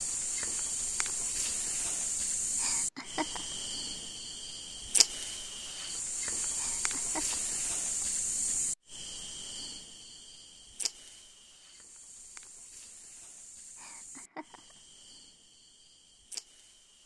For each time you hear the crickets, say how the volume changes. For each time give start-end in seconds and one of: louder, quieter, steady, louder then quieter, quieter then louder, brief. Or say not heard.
0.0-17.0 quieter.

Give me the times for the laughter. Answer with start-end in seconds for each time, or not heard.
2.5-3.5, 6.5-8.1, 13.8-14.8.